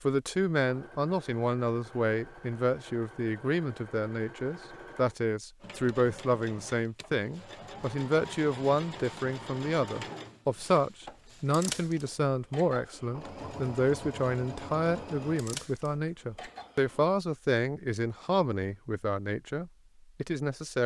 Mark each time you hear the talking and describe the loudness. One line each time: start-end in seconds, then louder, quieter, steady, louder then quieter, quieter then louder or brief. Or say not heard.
0.0-20.8 steady.